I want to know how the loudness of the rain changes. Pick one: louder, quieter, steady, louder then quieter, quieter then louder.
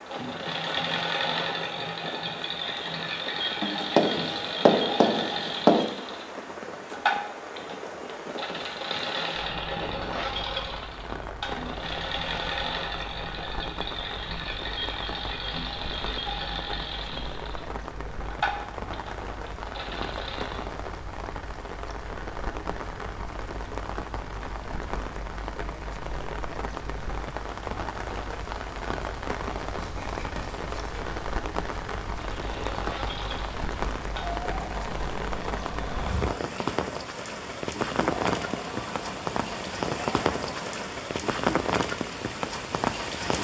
louder.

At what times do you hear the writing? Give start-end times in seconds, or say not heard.
3.6-5.9, 29.8-31.2.